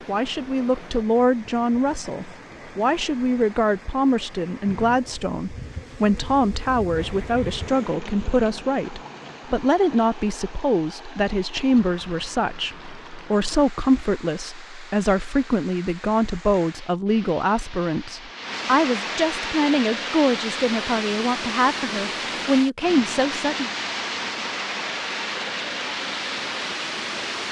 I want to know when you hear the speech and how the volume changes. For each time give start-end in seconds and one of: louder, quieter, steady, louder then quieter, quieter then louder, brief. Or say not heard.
0.1-23.7 steady.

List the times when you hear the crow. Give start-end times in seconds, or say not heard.
not heard.